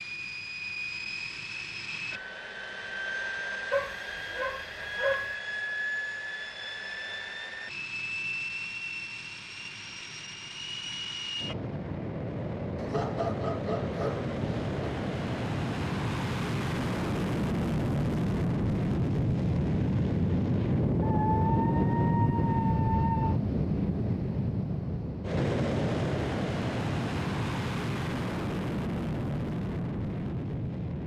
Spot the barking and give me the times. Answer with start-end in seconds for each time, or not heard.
3.7-5.3, 12.8-14.9, 21.0-23.4.